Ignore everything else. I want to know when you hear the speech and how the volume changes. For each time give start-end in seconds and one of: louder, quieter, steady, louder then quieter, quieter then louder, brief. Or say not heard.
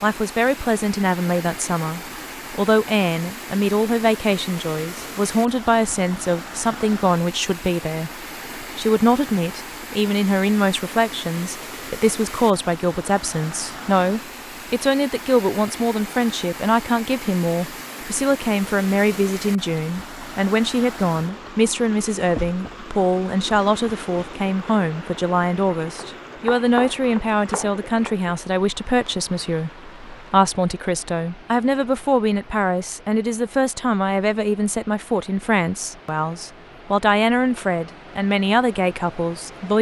0.0-39.7 steady.